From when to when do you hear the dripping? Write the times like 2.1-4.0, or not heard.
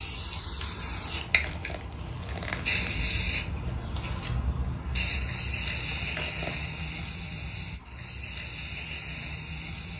not heard.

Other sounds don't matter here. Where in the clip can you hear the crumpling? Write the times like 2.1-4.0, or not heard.
1.2-3.0, 5.8-7.0.